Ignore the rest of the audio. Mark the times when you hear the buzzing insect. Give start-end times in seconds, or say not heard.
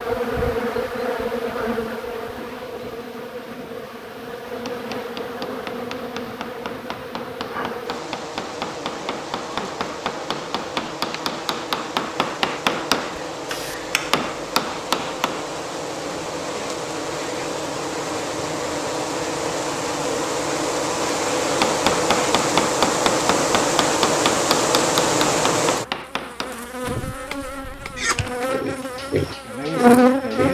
0.0-30.4.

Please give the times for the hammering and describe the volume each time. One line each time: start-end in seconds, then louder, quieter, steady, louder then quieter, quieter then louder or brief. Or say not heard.
4.5-15.4 louder
21.5-30.4 quieter.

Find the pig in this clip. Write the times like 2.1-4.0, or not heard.
27.9-30.4.